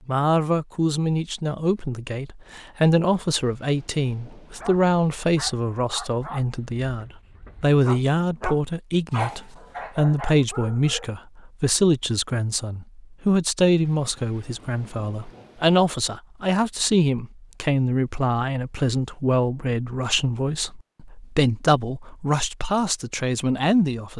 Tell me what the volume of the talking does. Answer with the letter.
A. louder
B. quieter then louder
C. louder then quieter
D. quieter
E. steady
E.